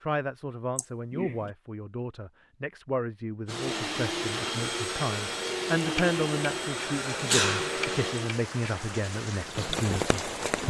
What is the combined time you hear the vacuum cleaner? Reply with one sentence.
You can hear the vacuum cleaner for 5 seconds altogether.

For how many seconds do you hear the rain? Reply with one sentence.
You can hear the rain for 7 seconds altogether.